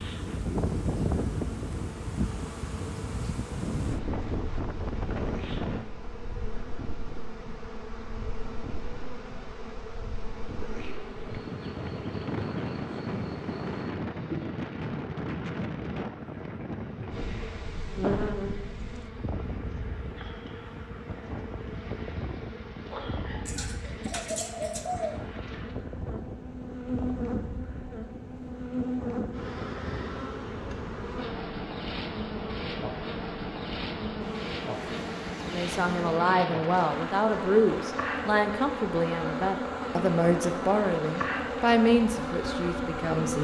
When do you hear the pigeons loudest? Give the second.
25 s.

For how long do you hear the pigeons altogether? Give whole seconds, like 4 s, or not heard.
2 s.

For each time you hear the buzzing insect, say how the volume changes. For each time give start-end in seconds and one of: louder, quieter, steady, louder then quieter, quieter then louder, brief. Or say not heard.
0.0-43.3 louder.